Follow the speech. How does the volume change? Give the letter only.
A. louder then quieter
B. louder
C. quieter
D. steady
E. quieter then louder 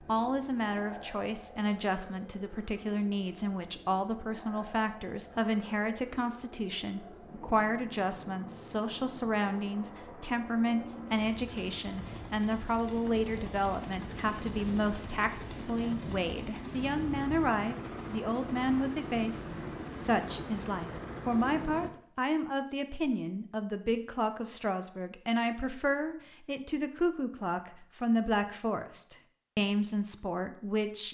D.